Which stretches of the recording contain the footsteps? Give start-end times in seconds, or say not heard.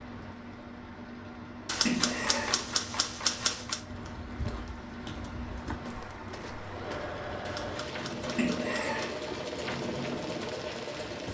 3.9-7.2.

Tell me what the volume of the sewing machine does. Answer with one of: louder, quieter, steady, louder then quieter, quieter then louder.
louder.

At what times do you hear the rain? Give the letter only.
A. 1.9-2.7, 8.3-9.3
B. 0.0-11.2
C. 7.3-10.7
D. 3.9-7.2
B.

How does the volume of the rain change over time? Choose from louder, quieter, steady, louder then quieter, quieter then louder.
louder.